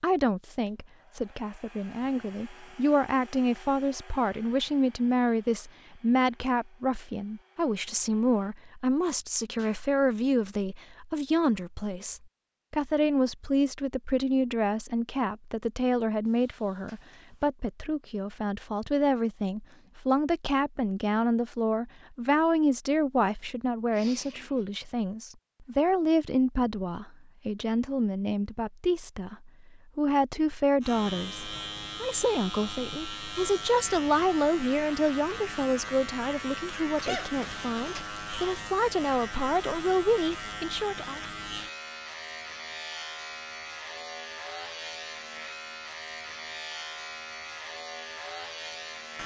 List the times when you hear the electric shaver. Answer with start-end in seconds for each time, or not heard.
30.8-49.2.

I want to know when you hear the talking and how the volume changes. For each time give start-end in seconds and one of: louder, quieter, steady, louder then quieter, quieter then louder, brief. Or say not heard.
0.0-41.2 steady.